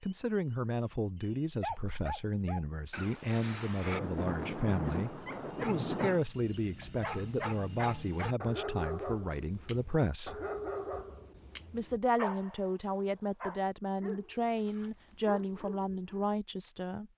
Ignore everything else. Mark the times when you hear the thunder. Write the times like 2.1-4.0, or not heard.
2.9-6.2.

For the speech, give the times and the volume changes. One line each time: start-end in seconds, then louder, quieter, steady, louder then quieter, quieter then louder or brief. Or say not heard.
0.0-10.4 steady
11.7-17.1 steady.